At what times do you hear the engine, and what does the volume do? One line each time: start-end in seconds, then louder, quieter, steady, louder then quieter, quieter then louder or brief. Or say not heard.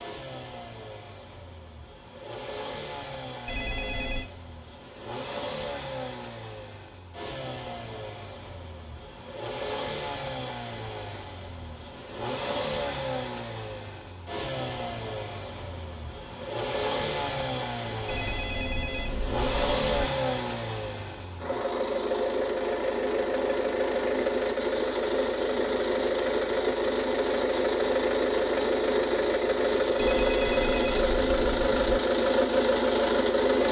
0.0-33.6 louder.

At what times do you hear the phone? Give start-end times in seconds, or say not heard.
3.5-4.3, 18.1-20.1, 29.9-32.0.